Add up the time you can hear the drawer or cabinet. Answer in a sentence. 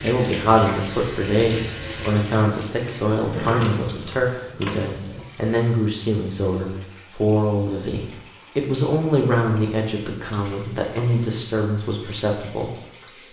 The drawer or cabinet can be heard for 2 seconds in total.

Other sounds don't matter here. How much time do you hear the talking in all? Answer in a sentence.
You can hear the talking for 13 seconds altogether.